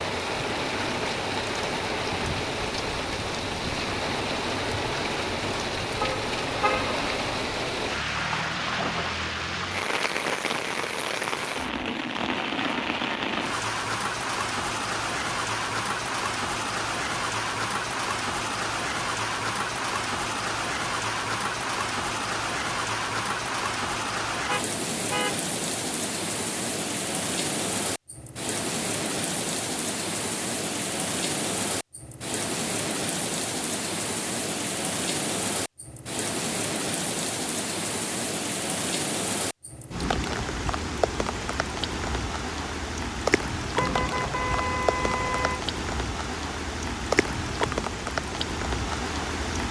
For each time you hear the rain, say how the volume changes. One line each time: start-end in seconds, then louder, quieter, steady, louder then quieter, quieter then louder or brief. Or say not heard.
0.0-49.6 steady.